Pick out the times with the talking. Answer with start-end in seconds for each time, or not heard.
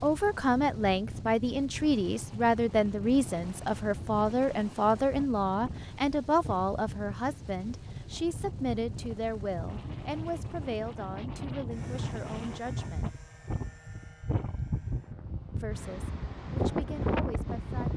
0.0-13.2, 15.6-17.9.